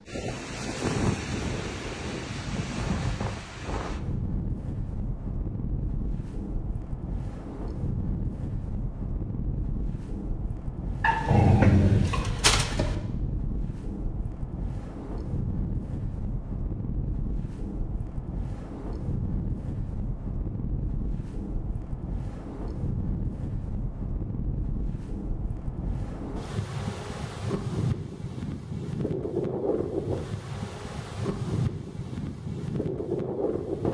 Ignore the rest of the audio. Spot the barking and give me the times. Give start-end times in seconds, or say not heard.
11.0-12.9.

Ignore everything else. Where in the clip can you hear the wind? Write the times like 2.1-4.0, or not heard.
0.0-33.8.